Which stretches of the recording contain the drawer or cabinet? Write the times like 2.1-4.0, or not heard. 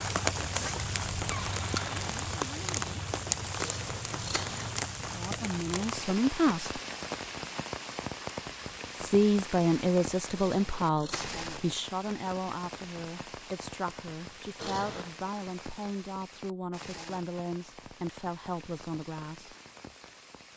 1.2-3.0.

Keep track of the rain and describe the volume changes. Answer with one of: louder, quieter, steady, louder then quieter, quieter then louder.
quieter.